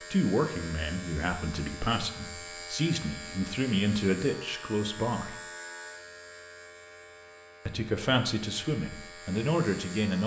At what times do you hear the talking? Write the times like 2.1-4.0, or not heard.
0.1-5.4, 7.7-10.2.